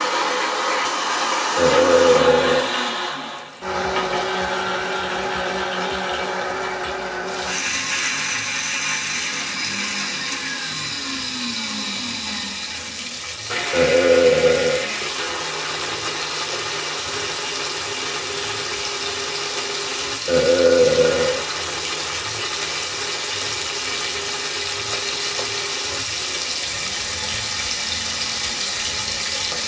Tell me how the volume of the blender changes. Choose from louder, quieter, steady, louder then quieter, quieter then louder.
quieter.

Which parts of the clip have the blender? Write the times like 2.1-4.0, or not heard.
0.0-29.6.